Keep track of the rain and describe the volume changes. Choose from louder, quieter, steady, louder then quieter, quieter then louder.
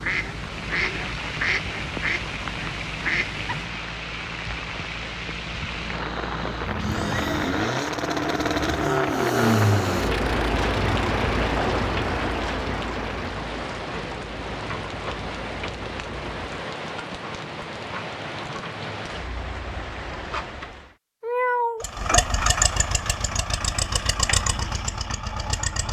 louder then quieter.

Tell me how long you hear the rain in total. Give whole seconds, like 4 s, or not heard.
21 s.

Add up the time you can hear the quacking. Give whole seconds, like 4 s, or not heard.
4 s.